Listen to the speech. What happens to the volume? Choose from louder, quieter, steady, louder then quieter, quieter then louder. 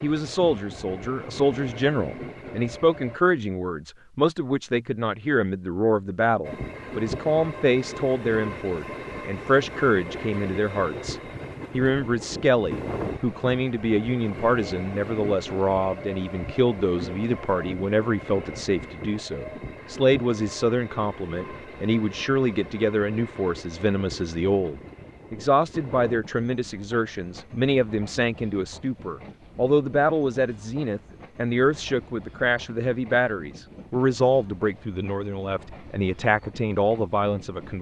steady.